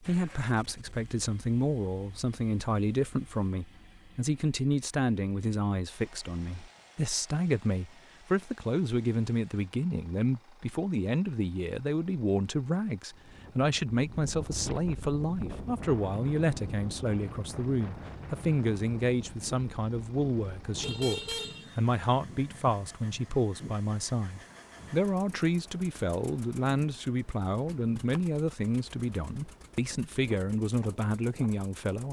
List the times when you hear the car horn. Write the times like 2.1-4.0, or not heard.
20.8-21.8.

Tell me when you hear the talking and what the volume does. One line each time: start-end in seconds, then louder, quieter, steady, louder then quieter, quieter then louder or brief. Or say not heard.
0.0-32.0 steady.